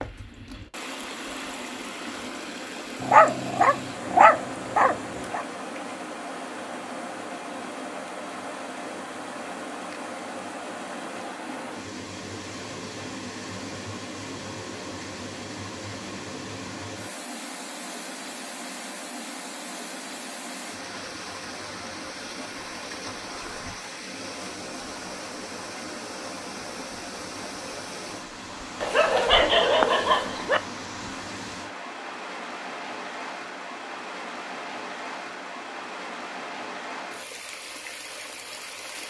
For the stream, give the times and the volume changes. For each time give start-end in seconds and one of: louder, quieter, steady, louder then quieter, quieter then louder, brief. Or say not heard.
0.0-39.0 steady.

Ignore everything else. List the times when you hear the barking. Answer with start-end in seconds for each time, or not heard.
3.0-5.4, 28.8-30.6.